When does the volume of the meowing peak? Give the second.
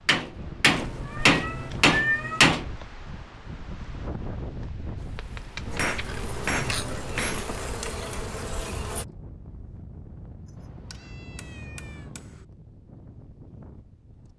2 s.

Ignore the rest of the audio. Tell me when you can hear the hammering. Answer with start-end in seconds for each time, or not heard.
0.1-2.7, 5.7-7.6, 10.4-12.4.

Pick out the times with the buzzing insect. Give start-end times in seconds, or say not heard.
5.0-9.1.